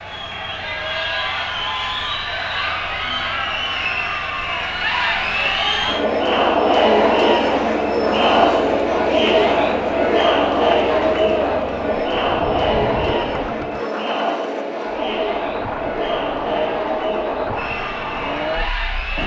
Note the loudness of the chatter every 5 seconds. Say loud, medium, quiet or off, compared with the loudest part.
medium, loud, loud, medium.